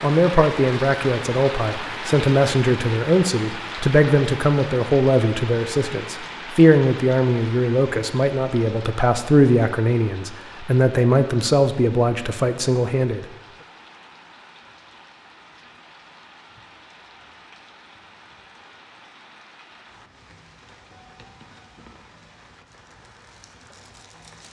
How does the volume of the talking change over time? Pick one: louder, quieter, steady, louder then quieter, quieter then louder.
steady.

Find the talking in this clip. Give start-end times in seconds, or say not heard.
0.0-13.2.